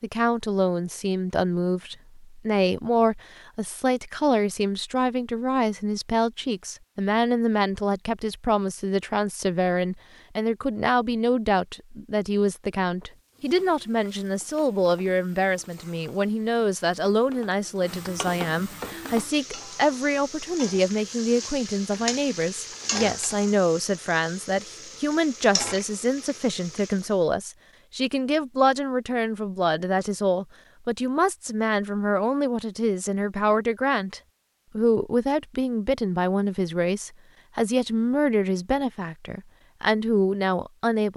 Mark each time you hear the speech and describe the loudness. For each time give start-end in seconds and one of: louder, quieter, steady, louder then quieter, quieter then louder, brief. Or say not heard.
0.0-41.1 steady.